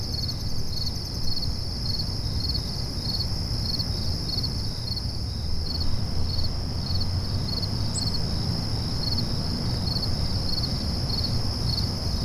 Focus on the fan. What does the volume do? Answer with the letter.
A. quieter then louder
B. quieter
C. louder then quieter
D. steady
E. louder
D.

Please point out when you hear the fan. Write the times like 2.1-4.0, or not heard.
5.6-12.2.